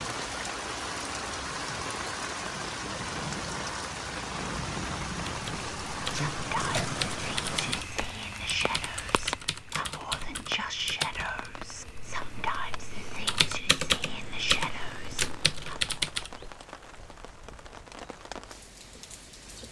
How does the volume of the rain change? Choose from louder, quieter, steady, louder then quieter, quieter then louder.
quieter.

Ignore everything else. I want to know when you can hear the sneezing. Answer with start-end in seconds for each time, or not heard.
6.1-7.0.